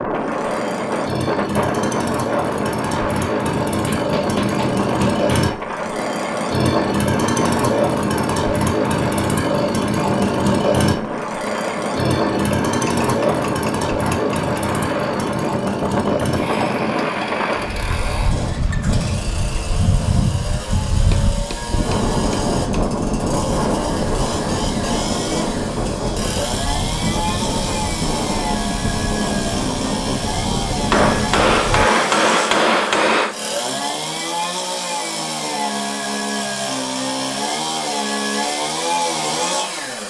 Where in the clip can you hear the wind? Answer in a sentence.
You can hear the wind from 0.0 to 31.9 s.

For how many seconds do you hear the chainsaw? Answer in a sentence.
The chainsaw can be heard for 40 seconds in total.